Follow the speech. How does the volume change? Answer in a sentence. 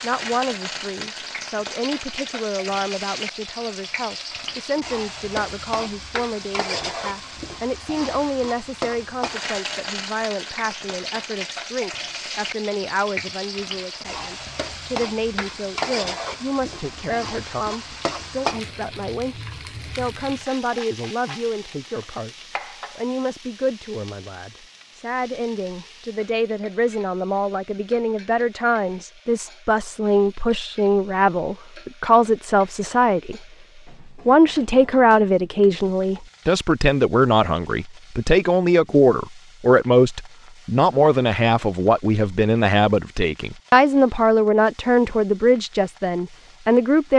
The volume of the speech goes up.